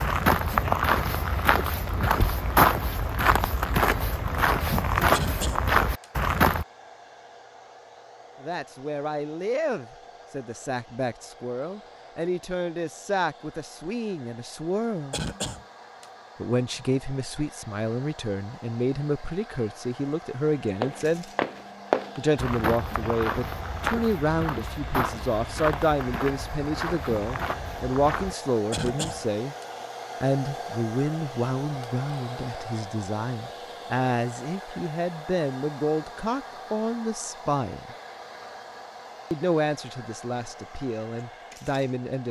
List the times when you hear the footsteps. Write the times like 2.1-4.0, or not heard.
0.0-6.7, 20.8-28.6.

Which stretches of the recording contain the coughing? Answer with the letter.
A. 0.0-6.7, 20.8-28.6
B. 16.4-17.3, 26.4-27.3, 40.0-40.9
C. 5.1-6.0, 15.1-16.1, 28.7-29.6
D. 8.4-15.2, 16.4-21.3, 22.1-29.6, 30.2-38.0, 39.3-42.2
C.